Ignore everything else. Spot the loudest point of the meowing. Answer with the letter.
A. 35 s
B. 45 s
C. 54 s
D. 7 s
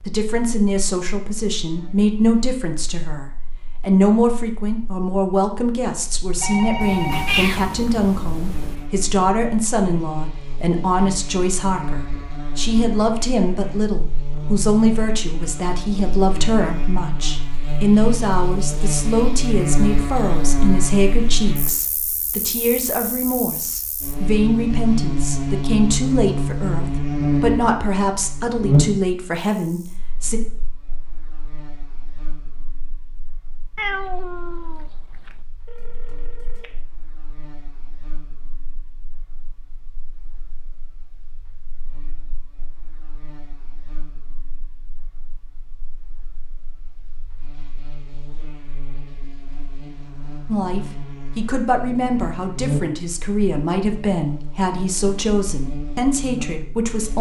D.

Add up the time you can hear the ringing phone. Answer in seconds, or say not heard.
2 s.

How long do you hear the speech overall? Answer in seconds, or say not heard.
37 s.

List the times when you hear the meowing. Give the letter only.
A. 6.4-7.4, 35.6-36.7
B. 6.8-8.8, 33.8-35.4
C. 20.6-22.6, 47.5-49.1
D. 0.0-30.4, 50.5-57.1
B.